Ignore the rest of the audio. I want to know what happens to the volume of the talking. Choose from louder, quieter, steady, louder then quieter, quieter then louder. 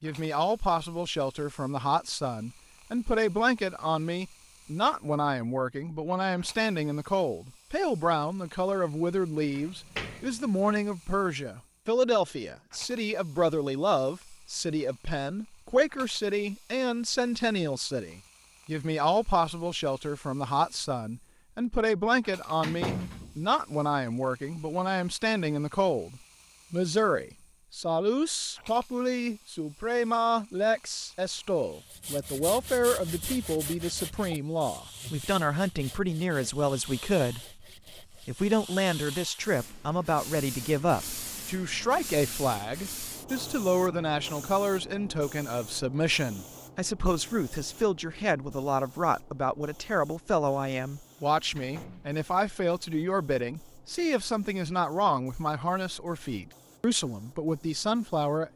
steady.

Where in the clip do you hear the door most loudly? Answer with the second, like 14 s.
23 s.